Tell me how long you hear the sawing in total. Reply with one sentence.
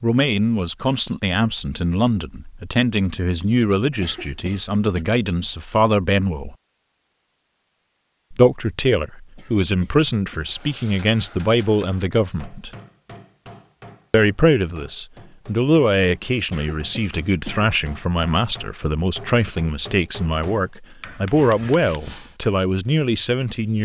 The sawing can't be heard in this clip.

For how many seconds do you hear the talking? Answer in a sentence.
The talking can be heard for 21 seconds in total.